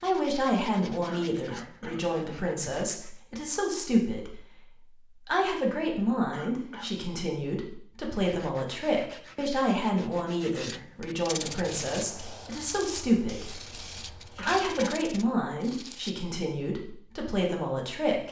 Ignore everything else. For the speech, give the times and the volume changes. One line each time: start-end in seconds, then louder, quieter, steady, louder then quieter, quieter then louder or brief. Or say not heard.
0.0-18.2 steady.